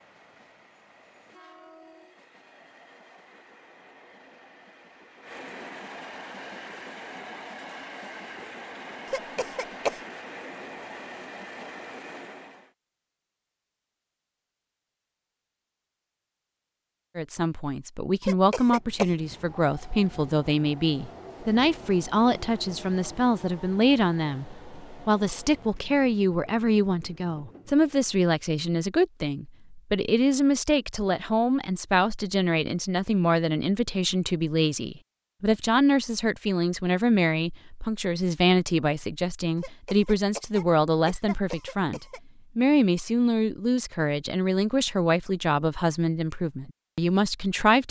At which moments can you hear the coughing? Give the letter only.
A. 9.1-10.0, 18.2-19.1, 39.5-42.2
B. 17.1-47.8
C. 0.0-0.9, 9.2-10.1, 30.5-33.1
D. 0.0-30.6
A.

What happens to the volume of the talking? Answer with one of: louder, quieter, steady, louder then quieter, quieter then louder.
steady.